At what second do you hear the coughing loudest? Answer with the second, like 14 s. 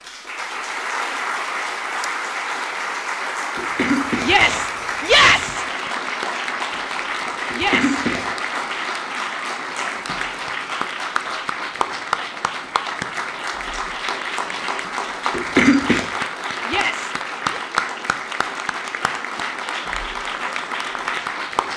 16 s.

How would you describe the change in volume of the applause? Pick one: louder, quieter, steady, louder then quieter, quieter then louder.
steady.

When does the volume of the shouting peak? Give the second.
5 s.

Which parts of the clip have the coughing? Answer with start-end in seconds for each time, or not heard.
3.5-5.5, 7.5-8.2, 15.3-16.1.